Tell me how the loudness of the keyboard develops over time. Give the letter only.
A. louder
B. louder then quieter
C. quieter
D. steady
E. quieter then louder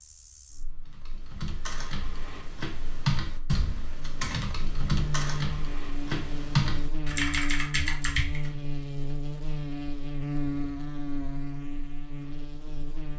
A.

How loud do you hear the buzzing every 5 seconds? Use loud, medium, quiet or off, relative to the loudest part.
medium, loud, loud.